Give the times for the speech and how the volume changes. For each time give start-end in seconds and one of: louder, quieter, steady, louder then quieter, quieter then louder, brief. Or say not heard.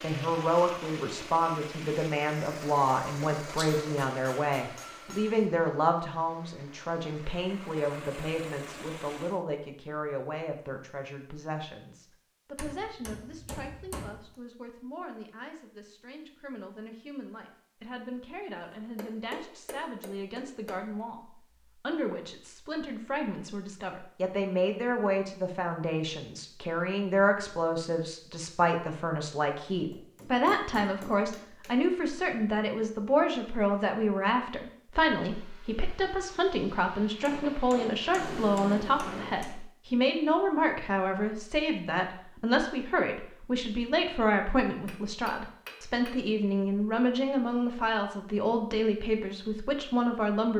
0.0-50.5 quieter then louder.